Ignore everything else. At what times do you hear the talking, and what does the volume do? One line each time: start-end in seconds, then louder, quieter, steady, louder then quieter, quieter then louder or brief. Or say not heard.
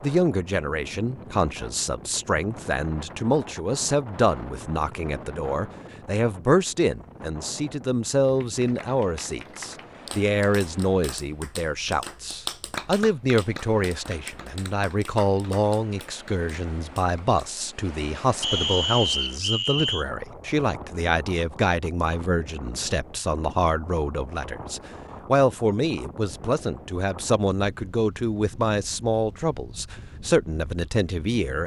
0.0-31.6 steady.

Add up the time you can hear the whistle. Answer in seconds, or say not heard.
2 s.